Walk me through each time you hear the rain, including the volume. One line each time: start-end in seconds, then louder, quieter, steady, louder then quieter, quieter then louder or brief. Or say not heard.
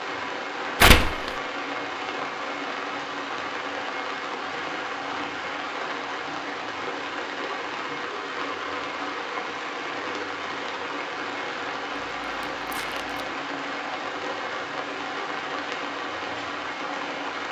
0.0-17.4 steady.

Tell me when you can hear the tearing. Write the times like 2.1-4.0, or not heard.
0.8-1.3, 12.4-13.2.